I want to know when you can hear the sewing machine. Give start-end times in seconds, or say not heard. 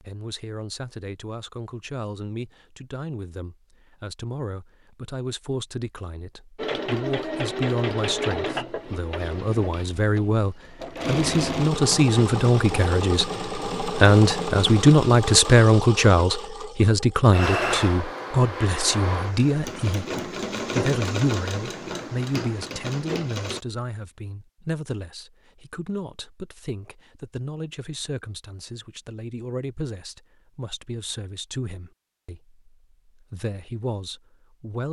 6.5-23.6.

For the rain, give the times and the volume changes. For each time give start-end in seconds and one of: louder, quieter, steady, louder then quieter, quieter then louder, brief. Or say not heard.
not heard.